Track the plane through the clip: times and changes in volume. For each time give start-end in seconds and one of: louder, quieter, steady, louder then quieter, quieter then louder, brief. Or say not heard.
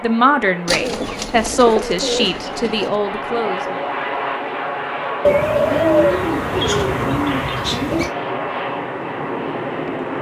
0.0-10.1 louder.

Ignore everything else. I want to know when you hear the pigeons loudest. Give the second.
6 s.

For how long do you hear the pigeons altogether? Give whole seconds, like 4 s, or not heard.
5 s.